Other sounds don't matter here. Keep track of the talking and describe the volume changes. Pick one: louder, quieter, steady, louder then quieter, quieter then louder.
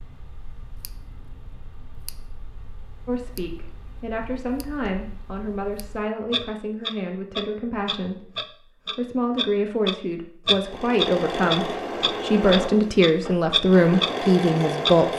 louder.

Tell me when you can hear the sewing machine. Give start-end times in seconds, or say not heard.
10.6-15.1.